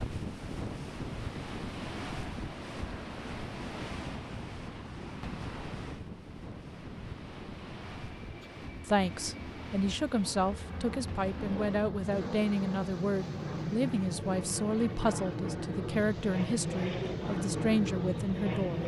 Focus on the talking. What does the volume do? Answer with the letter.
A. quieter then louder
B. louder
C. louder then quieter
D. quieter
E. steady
E.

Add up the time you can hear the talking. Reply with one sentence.
You can hear the talking for 10 seconds altogether.